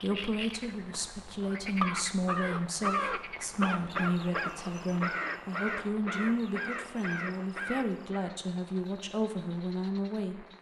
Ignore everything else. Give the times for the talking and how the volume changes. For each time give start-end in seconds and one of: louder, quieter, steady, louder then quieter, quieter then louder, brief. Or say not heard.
0.0-10.4 steady.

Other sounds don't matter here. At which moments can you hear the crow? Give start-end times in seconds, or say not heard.
0.3-8.3.